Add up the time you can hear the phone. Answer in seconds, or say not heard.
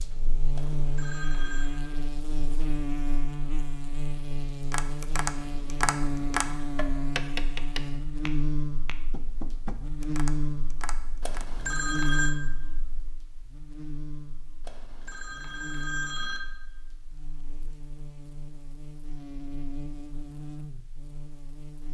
4 s.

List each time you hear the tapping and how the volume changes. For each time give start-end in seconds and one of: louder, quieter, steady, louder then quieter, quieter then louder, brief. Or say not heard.
4.7-11.4 quieter.